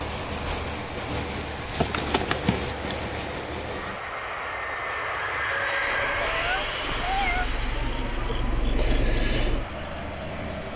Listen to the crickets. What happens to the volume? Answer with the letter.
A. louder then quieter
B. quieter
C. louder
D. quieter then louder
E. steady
D.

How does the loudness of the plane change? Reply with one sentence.
The loudness of the plane goes up, then down.